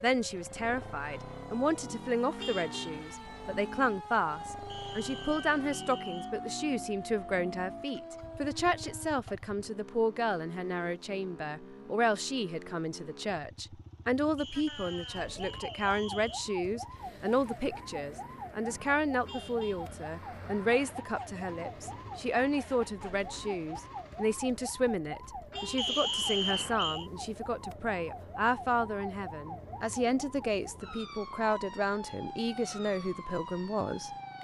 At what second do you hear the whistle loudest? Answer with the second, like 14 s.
26 s.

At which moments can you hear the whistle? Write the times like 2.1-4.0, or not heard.
4.7-6.3, 14.3-16.4, 25.8-27.1.